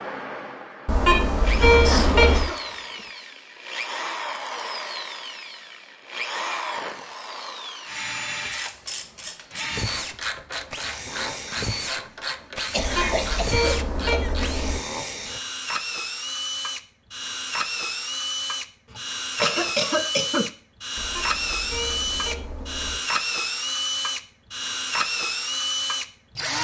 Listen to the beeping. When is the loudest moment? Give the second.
2 s.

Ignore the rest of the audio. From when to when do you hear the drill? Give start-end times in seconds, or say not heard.
0.0-26.5.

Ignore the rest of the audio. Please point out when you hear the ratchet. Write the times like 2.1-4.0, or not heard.
8.5-14.6.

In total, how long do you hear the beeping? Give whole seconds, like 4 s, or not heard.
6 s.